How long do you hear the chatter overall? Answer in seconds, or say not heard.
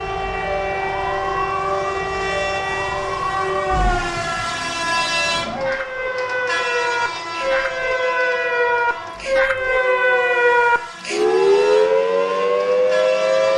not heard.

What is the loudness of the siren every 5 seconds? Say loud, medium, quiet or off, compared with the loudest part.
medium, medium, loud.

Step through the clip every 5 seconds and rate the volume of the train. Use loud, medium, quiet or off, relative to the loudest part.
loud, loud, medium.